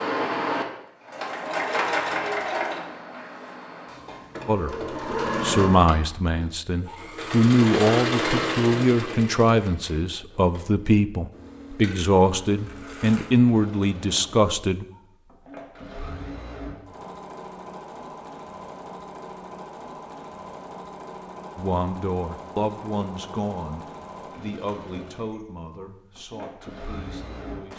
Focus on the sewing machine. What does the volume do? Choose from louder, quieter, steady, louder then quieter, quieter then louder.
quieter.